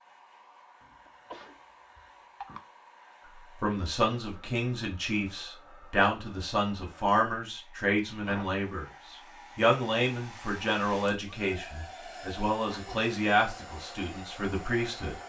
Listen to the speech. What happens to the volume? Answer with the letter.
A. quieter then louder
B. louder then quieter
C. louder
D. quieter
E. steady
E.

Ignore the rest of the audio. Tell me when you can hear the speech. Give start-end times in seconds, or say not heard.
3.6-15.2.